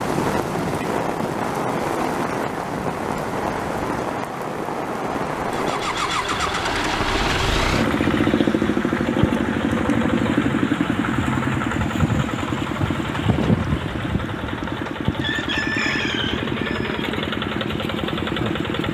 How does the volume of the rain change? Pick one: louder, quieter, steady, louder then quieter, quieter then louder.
quieter.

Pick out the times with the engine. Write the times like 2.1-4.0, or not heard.
5.5-18.8.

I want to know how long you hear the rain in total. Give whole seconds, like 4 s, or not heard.
19 s.